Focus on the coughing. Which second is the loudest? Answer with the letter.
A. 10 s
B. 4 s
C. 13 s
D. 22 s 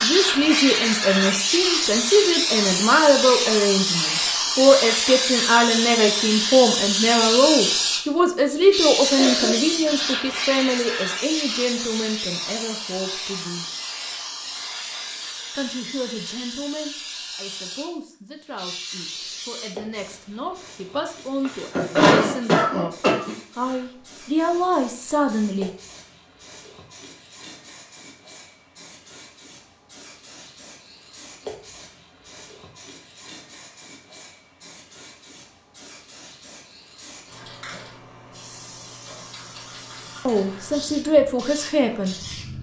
D.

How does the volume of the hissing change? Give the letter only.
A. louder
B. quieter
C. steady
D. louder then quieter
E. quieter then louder
B.